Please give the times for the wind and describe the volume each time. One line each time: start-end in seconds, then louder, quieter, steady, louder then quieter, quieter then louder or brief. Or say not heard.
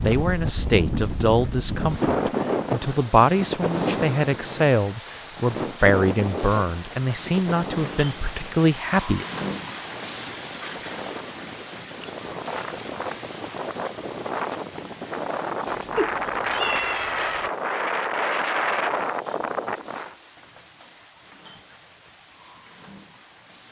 0.0-20.1 quieter then louder.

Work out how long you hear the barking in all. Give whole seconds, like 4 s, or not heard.
not heard.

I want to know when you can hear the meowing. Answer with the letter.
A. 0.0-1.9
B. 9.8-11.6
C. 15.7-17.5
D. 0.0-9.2
C.